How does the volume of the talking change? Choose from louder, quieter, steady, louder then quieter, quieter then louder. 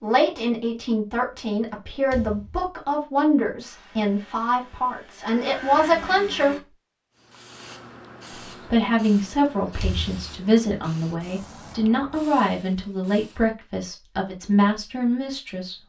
steady.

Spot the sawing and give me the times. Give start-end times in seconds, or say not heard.
not heard.